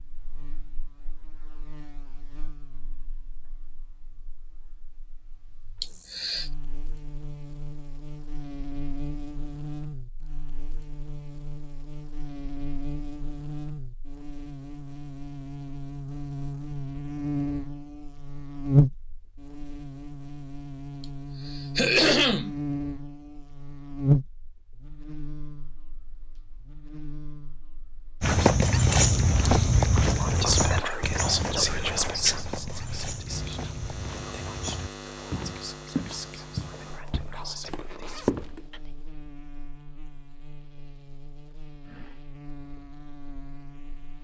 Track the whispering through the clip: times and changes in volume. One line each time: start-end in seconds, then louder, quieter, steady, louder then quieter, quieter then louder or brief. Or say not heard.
30.1-38.9 quieter.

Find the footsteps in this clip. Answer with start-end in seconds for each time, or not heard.
28.2-38.7.